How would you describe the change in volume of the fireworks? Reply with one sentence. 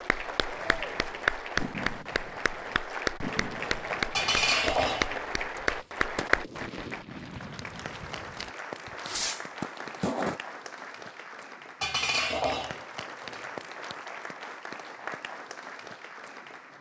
The volume of the fireworks goes up.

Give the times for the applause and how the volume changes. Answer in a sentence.
You can hear the applause from 0.0 to 16.7 s, getting quieter.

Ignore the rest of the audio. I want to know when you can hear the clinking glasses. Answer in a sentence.
You can hear the clinking glasses from 4.1 to 5.8 s and from 11.8 to 13.5 s.